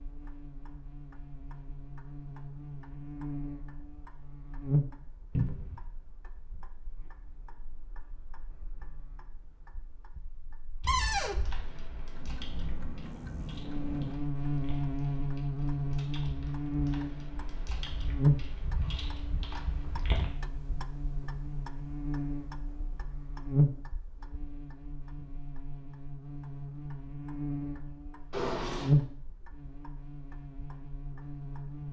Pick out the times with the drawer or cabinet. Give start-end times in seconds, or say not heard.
5.3-5.8, 10.8-11.4, 28.3-28.9.